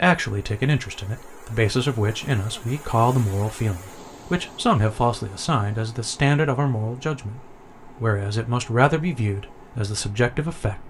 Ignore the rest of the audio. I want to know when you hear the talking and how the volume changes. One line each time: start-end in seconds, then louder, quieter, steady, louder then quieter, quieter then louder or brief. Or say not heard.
0.0-10.8 steady.